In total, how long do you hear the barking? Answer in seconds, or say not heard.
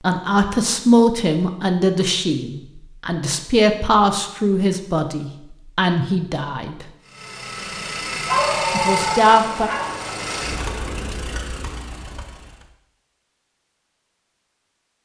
2 s.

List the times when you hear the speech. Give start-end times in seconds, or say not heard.
0.0-6.8, 8.7-9.7.